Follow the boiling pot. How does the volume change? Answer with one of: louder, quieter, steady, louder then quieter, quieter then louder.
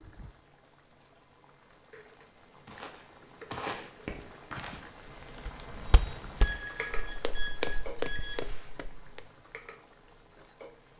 louder then quieter.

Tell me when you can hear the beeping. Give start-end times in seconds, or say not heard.
6.3-8.7.